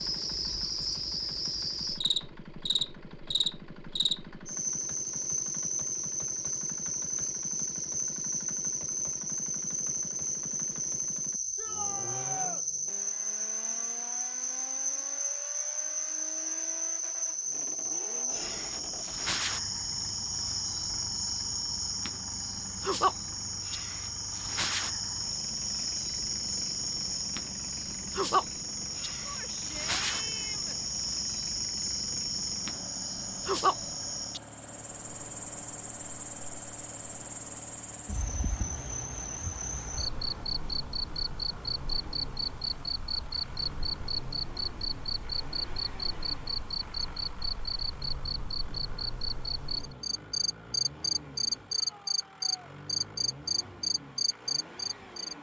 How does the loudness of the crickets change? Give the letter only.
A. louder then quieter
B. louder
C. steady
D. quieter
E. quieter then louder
C.